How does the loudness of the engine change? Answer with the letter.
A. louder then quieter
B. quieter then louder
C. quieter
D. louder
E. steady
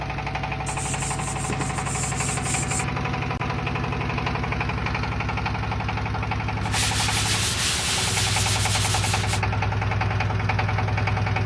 E.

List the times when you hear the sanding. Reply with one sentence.
You can hear the sanding from 0.7 to 2.9 s and from 6.6 to 9.4 s.